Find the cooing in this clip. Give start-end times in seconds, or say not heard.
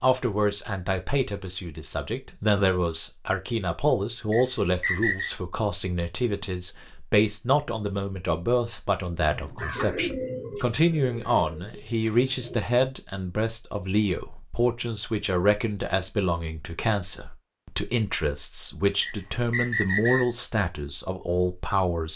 9.2-12.6.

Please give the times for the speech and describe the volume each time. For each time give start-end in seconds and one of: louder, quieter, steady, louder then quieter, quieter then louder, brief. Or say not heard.
0.0-22.1 steady.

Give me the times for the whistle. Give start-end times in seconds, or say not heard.
4.3-5.3, 19.0-20.3.